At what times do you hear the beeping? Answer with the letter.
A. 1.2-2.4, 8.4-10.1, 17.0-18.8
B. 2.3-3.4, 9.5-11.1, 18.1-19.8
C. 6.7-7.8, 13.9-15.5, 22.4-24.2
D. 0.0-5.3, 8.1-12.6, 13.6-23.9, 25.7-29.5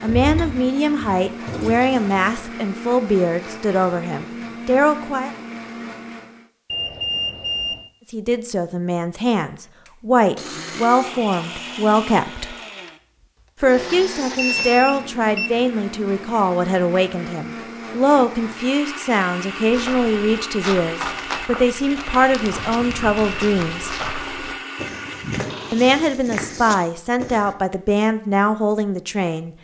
C.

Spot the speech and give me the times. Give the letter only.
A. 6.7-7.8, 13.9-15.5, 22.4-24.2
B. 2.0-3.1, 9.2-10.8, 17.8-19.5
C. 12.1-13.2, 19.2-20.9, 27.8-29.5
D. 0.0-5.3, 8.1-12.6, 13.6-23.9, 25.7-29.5
D.